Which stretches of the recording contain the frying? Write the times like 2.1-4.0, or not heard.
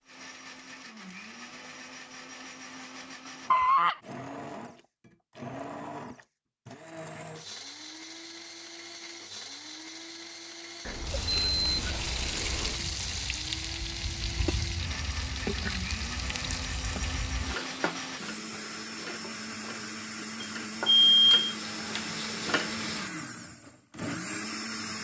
11.0-23.1.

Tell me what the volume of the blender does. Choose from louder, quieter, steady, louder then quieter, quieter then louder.
louder.